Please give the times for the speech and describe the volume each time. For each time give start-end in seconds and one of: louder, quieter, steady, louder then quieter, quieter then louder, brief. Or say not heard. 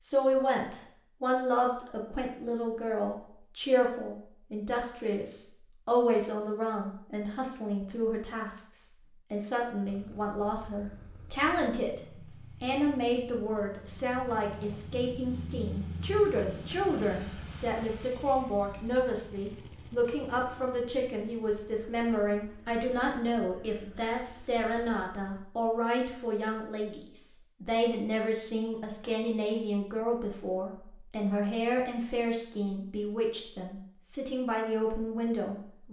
0.0-35.8 steady.